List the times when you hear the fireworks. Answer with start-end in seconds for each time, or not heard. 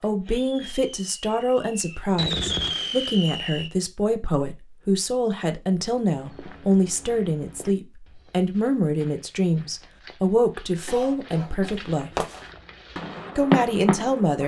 0.0-3.7, 11.7-14.4.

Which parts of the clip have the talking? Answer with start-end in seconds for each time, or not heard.
0.0-12.1, 13.3-14.4.